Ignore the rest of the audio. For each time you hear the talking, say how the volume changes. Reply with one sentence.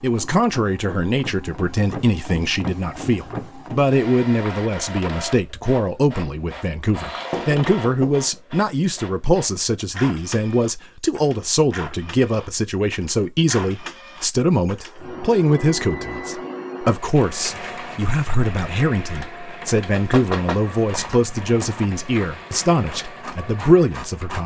The talking can be heard from 0.0 to 24.4 s, at a steady volume.